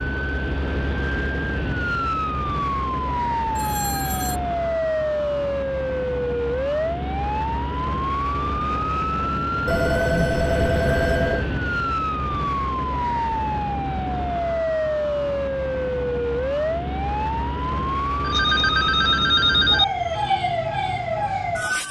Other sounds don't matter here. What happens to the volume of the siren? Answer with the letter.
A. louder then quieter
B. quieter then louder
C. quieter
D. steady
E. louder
D.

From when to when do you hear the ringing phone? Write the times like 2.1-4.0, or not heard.
3.5-4.4, 9.7-11.6, 18.2-19.9.